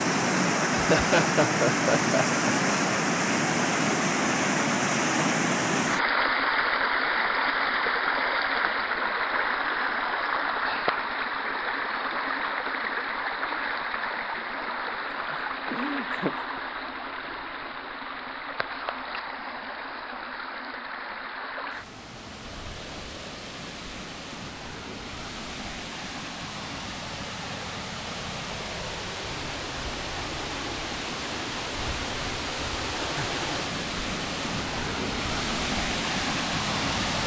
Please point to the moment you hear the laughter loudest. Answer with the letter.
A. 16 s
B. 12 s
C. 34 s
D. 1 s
D.